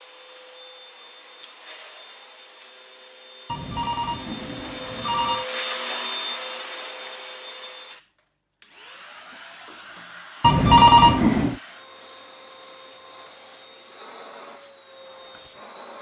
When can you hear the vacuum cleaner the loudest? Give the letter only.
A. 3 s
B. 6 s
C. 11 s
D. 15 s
B.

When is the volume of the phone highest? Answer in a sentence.
The volume of the phone peaks at 11 seconds.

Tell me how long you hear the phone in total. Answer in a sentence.
You can hear the phone for 3 seconds altogether.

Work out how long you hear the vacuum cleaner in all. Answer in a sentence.
The vacuum cleaner can be heard for 16 seconds in total.